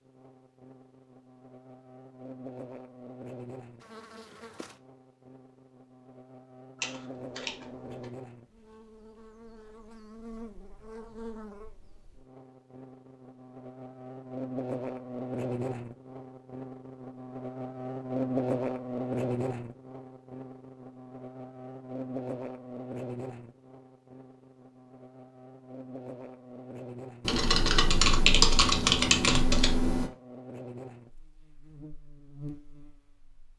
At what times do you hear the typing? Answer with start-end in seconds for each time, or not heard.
6.8-8.1, 27.2-30.1.